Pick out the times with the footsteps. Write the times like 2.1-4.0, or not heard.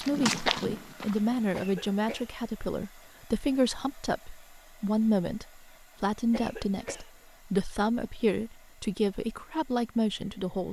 0.0-1.6.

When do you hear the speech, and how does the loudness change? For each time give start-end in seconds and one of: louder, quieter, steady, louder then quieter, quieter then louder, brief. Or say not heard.
0.0-10.6 steady.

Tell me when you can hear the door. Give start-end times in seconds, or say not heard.
not heard.